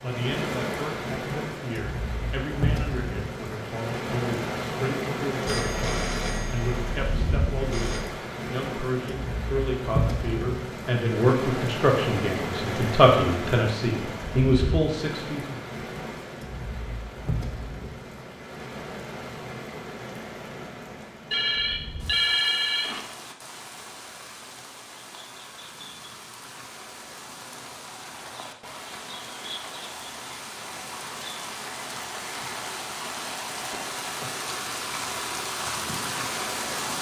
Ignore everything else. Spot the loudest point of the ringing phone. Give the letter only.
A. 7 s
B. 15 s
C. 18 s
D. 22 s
D.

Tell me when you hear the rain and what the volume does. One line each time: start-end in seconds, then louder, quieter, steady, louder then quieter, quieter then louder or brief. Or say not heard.
0.0-36.9 quieter then louder.